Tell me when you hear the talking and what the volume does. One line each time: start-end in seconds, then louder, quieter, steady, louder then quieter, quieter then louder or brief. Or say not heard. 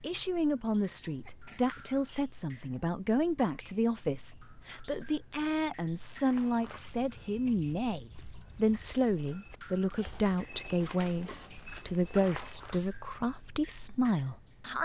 0.0-14.8 steady.